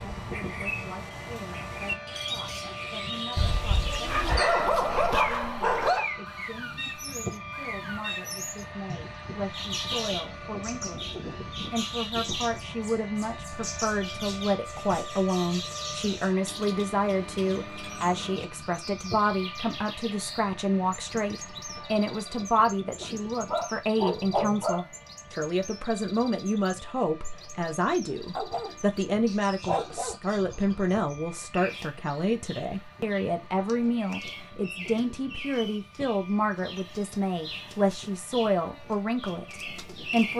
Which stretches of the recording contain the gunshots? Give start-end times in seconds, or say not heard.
not heard.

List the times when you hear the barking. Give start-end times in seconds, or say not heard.
3.4-6.1, 23.0-24.9, 28.4-30.1.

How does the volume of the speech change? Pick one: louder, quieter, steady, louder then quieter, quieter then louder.
louder.